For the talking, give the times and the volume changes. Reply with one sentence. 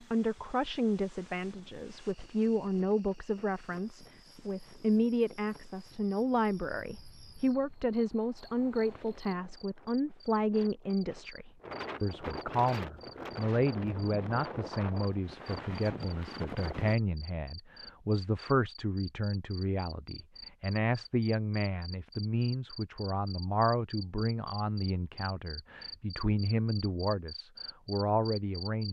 The talking can be heard from 0.1 to 28.8 s, at a steady volume.